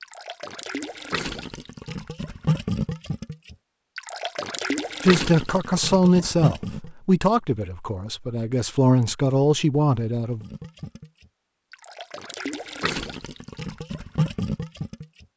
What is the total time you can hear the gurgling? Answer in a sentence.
The gurgling can be heard for 12 seconds in total.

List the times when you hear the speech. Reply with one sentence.
The speech can be heard from 5.0 to 10.4 s.